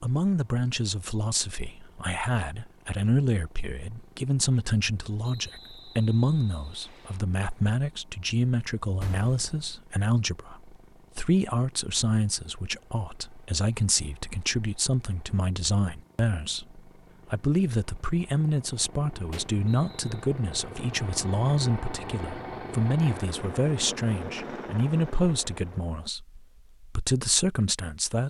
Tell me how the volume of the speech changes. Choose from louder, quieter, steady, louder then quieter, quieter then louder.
steady.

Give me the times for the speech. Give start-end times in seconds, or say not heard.
0.0-28.2.